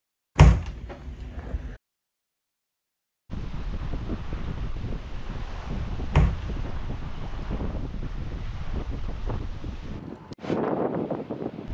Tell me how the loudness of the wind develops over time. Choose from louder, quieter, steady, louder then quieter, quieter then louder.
louder.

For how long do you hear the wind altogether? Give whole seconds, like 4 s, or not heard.
8 s.